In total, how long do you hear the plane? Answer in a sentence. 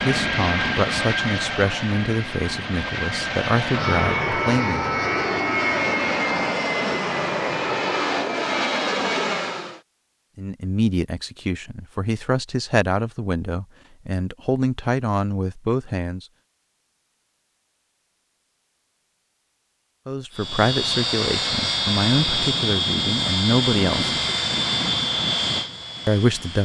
You can hear the plane for 16 seconds altogether.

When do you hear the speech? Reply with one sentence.
The speech can be heard from 0.0 to 4.9 s, from 10.3 to 16.2 s, from 20.1 to 24.1 s and from 26.1 to 26.5 s.